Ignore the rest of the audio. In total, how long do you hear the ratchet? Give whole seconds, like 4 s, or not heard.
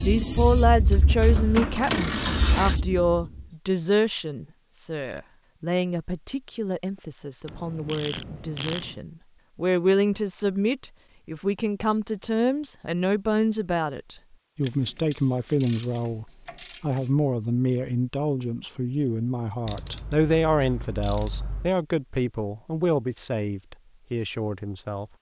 8 s.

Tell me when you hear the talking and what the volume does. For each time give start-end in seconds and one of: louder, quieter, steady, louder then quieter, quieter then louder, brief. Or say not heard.
0.0-25.1 steady.